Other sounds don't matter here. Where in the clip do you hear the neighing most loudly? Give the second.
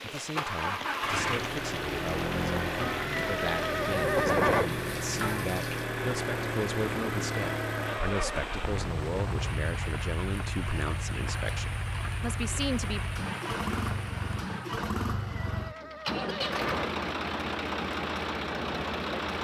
4 s.